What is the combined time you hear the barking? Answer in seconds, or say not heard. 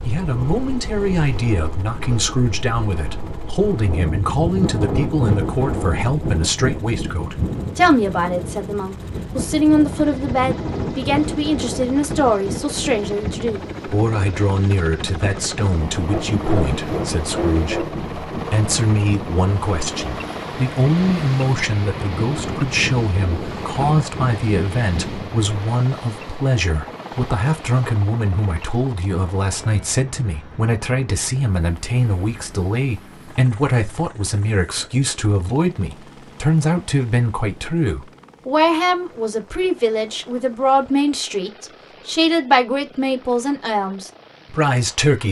2 s.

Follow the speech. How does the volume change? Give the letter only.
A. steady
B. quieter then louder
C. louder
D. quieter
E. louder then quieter
A.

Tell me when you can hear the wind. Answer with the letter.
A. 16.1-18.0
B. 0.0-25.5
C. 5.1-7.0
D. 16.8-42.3
B.